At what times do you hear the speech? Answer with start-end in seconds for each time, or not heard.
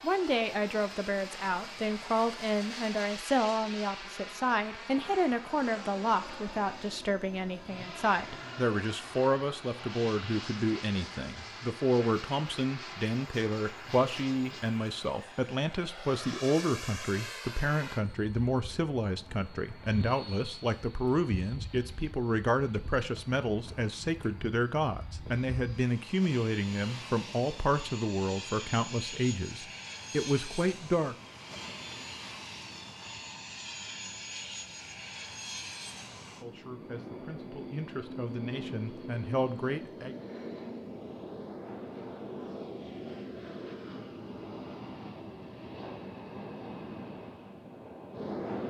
0.0-31.1, 36.4-40.1.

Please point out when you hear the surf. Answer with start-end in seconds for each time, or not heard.
not heard.